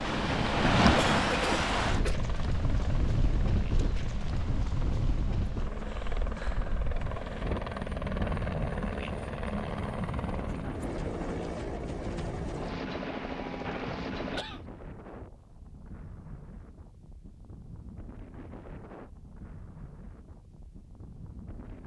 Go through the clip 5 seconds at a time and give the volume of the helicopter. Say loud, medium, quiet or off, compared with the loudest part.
medium, loud, loud, off, off.